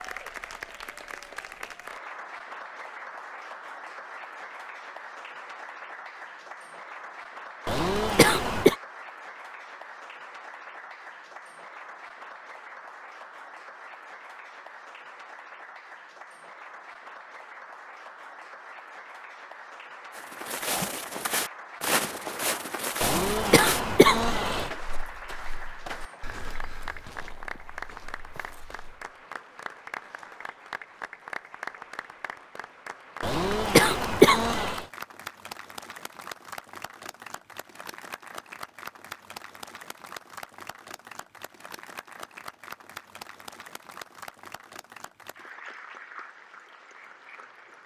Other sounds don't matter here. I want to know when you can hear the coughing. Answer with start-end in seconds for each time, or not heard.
7.7-8.8, 23.0-24.7, 33.2-34.9.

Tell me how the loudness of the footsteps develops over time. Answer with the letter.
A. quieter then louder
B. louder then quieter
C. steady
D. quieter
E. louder
D.